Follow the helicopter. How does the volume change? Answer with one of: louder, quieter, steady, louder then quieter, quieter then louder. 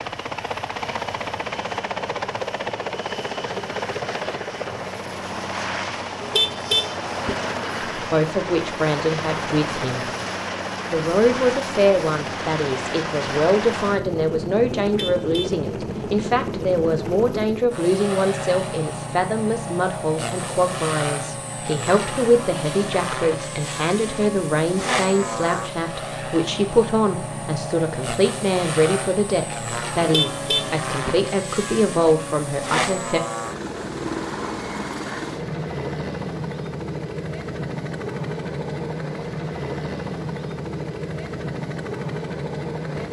steady.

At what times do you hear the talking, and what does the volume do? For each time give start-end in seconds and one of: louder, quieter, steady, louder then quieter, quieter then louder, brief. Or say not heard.
8.0-10.1 brief
10.9-33.2 steady.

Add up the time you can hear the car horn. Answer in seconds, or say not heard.
3 s.